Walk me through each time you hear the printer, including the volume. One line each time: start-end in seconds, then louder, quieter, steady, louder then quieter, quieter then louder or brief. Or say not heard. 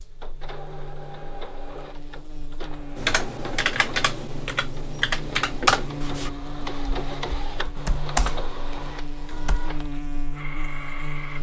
0.0-11.3 louder then quieter.